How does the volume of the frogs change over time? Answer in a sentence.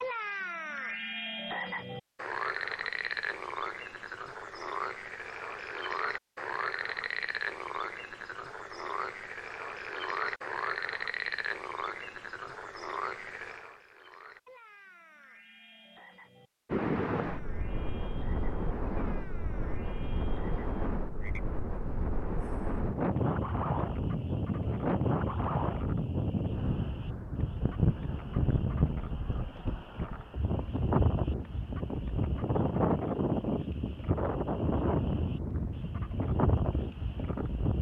The volume of the frogs goes down.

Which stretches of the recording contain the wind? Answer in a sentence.
You can hear the wind from 16.7 to 37.7 s.